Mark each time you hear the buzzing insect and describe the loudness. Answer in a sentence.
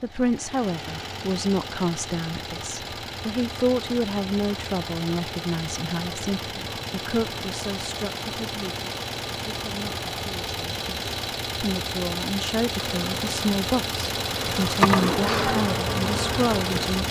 You can hear the buzzing insect from 12.8 to 17.0 s, getting louder then quieter.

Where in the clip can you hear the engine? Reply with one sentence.
The engine can be heard from 0.0 to 17.0 s.